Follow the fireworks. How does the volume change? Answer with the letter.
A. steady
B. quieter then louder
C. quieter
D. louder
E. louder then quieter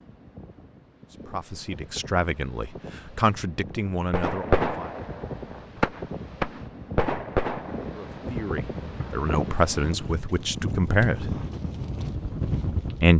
C.